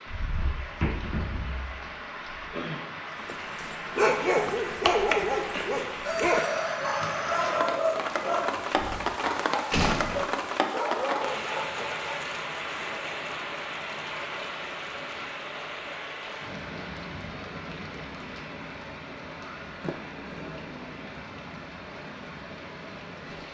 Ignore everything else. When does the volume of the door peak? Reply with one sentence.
The volume of the door peaks at 10 seconds.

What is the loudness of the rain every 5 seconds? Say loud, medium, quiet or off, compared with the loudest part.
medium, loud, loud, medium, medium.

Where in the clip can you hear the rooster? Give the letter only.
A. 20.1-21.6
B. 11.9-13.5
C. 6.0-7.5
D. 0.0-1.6
C.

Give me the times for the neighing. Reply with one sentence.
You can't hear the neighing here.